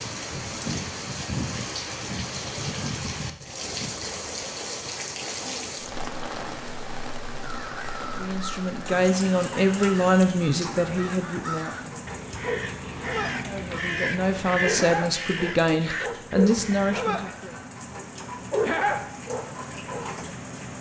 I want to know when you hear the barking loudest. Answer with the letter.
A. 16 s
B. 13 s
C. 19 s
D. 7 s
C.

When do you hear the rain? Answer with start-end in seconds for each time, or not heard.
0.0-20.7.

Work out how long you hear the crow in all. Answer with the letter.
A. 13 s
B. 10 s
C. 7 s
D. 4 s
B.